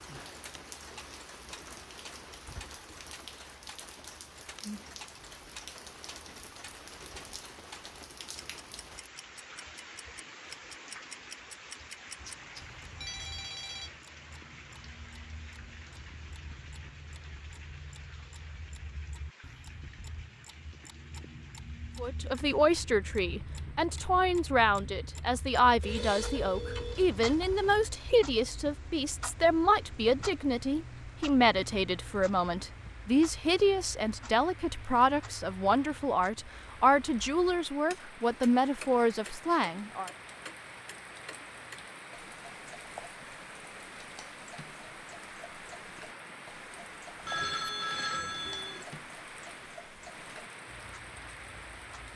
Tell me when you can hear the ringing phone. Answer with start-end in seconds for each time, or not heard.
12.2-14.0, 25.8-27.8, 47.2-48.9.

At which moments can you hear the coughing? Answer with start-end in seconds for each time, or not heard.
not heard.